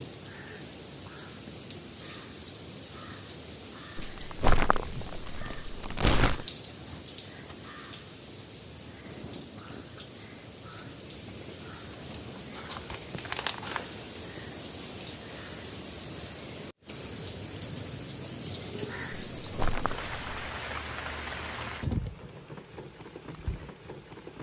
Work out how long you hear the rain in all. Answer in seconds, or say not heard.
24 s.